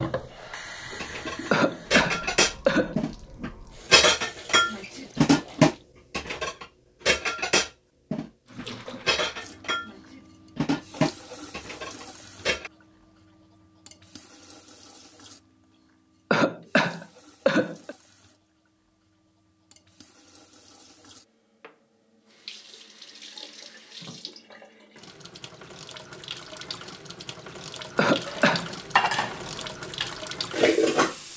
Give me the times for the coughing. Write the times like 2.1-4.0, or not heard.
1.5-3.0, 16.3-17.9, 27.9-28.8.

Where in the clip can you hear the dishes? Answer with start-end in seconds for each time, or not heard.
0.9-12.7, 28.2-31.1.